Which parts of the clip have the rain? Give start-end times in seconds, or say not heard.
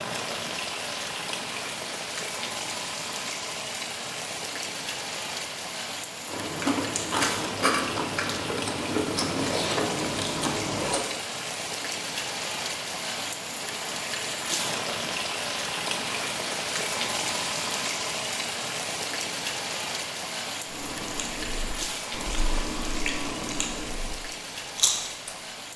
0.0-25.7.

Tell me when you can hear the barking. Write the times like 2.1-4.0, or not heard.
not heard.